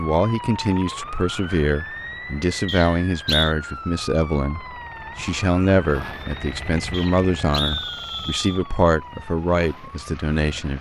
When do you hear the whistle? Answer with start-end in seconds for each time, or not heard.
2.6-3.5, 6.9-8.6.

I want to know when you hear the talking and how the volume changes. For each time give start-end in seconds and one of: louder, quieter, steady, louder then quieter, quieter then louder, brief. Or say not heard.
0.0-10.7 steady.